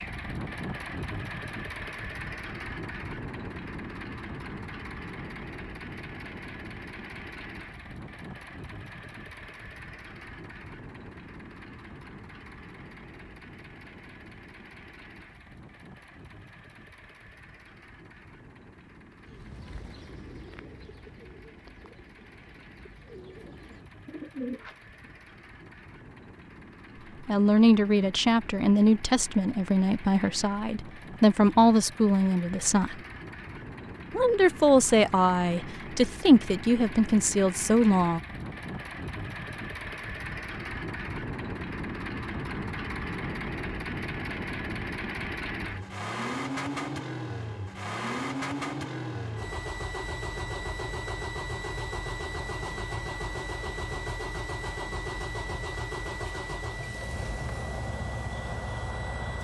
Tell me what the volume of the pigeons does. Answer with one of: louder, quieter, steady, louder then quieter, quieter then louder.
quieter then louder.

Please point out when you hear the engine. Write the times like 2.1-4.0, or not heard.
0.0-59.3.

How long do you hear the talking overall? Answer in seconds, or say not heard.
10 s.